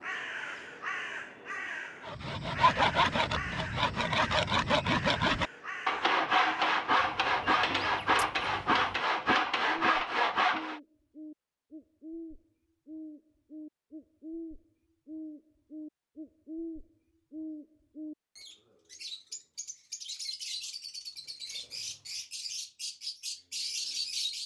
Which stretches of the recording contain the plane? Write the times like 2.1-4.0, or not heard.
not heard.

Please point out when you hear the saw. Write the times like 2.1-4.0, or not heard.
2.0-10.8.